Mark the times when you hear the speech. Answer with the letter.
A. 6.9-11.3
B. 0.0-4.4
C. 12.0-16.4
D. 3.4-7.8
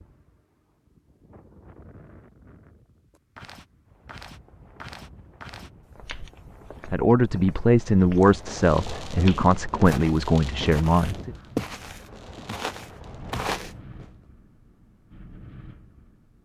A.